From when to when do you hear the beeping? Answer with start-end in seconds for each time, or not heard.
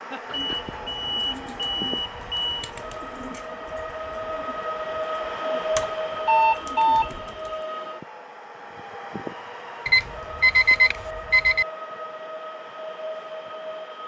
0.3-2.7, 5.8-7.0, 9.8-11.7.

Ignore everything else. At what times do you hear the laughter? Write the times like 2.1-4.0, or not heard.
0.1-0.8.